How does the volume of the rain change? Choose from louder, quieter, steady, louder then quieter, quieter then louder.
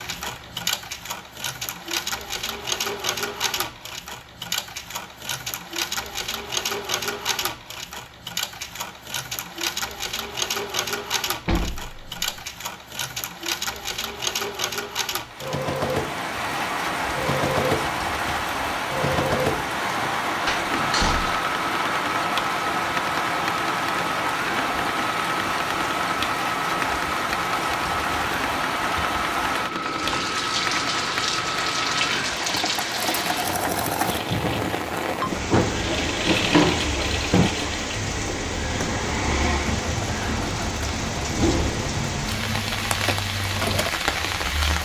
steady.